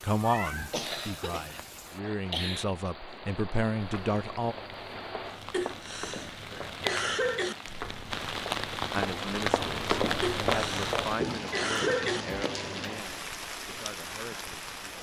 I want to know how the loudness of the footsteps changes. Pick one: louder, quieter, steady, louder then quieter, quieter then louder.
louder.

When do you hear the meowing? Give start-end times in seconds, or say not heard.
0.1-0.8.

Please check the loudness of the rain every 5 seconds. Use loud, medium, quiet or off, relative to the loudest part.
medium, loud, loud.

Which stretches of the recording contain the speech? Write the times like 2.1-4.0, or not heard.
0.0-4.5, 8.9-14.9.